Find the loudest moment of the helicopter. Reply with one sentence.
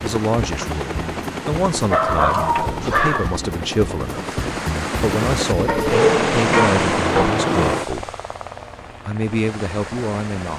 The volume of the helicopter peaks at 7 seconds.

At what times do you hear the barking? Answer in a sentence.
You can hear the barking from 1.8 to 3.4 s and from 5.7 to 7.3 s.